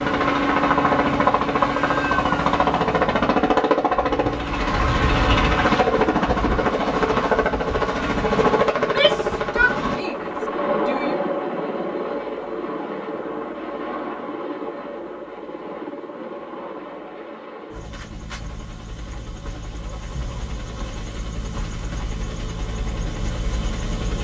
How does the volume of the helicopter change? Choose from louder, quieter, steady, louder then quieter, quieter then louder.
quieter.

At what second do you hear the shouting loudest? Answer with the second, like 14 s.
9 s.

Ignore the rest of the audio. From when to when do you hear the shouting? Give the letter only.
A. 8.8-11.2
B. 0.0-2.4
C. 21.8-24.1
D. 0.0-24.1
A.